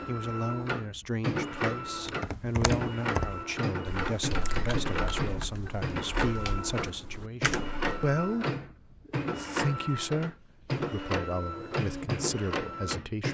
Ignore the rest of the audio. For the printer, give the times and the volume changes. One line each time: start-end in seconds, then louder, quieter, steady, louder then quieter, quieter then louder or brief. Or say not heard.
0.0-13.2 steady.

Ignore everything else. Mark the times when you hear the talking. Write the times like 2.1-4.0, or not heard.
0.1-13.2.